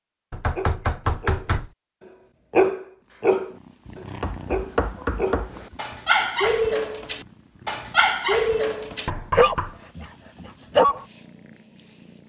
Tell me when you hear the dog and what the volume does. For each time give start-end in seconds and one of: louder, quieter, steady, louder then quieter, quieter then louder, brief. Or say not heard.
0.6-11.1 steady.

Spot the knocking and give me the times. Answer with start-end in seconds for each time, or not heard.
0.3-1.7, 4.2-5.7, 9.1-9.8.